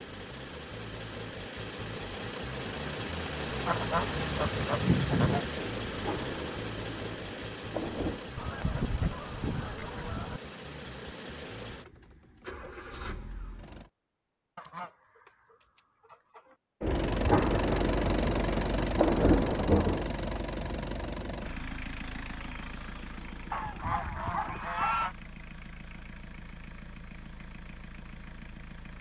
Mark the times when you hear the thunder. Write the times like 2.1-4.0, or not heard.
5.5-8.3, 16.8-20.1.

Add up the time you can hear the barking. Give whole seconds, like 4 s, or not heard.
not heard.